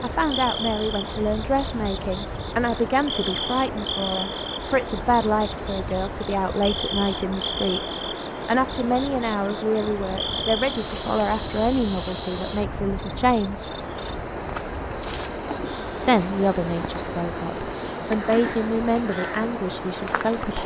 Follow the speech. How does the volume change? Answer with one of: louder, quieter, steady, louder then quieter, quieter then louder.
steady.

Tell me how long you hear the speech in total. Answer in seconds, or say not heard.
18 s.